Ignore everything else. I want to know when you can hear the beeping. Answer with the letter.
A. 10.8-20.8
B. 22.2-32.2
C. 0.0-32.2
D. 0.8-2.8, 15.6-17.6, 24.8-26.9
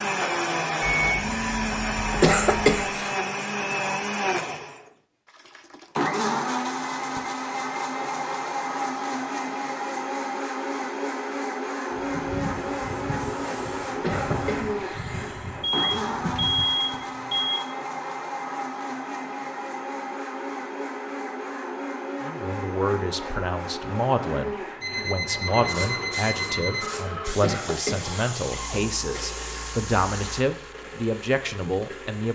D.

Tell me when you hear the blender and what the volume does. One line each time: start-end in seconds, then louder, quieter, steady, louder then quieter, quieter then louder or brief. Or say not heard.
0.0-32.2 quieter.